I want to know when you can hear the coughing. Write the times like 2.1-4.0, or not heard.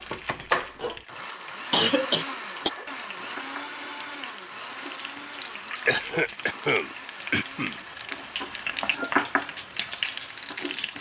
1.7-2.7, 5.8-7.8.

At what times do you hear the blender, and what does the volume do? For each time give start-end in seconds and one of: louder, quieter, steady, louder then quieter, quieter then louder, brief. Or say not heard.
0.0-10.9 quieter.